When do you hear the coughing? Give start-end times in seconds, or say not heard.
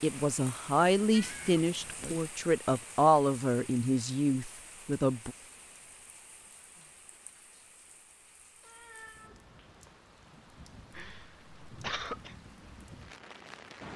10.9-12.3.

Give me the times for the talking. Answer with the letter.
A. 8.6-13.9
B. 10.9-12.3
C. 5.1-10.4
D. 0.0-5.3
D.